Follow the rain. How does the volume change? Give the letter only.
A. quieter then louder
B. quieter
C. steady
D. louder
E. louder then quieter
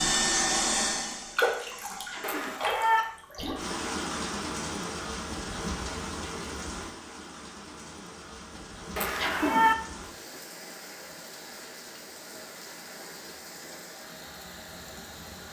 B.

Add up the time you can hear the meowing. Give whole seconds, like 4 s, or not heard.
2 s.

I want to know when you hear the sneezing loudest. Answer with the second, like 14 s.
9 s.